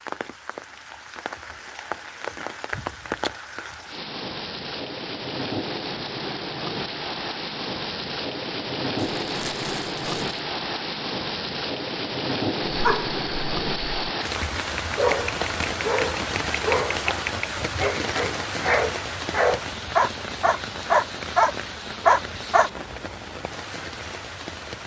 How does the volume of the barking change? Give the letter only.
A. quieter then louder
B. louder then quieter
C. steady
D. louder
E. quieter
D.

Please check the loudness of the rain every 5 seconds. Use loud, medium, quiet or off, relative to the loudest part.
medium, loud, loud, loud, medium.